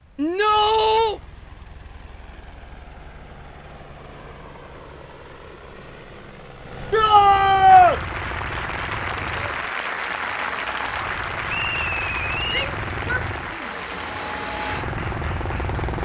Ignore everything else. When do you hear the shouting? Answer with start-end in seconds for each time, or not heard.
0.1-1.2, 6.9-8.0, 12.5-13.8.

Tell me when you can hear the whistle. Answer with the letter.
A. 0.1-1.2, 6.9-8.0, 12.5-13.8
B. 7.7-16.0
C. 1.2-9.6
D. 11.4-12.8
D.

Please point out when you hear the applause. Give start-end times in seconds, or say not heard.
7.7-16.0.